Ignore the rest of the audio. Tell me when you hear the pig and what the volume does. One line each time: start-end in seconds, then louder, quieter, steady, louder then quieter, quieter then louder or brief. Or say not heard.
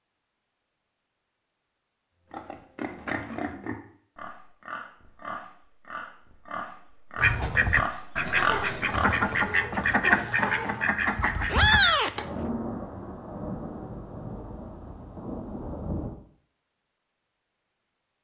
2.3-9.2 quieter then louder.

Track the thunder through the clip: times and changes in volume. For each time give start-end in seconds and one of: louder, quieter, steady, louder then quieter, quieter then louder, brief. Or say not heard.
12.1-16.1 quieter then louder.